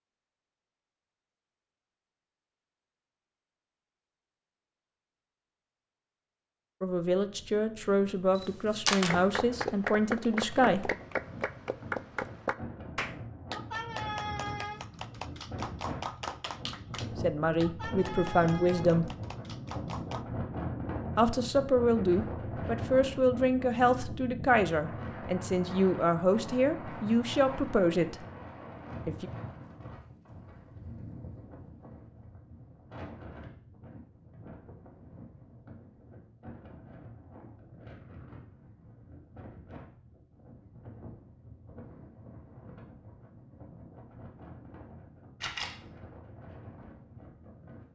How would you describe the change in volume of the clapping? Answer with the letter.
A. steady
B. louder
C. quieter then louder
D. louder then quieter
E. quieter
E.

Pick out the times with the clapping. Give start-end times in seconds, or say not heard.
8.9-20.2.